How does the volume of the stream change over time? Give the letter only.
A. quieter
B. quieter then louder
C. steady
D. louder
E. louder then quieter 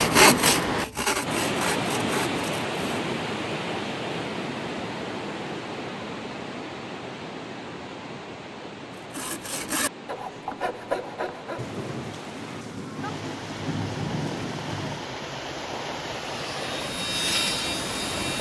B.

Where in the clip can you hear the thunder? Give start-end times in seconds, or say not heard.
11.6-15.2.